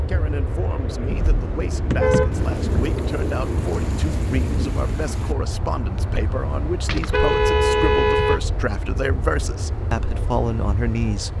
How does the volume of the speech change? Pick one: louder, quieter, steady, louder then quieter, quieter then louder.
louder.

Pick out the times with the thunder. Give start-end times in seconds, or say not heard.
2.3-5.3.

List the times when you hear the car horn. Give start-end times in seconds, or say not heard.
1.1-2.9, 6.8-8.6.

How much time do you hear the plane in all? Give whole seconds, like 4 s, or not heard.
11 s.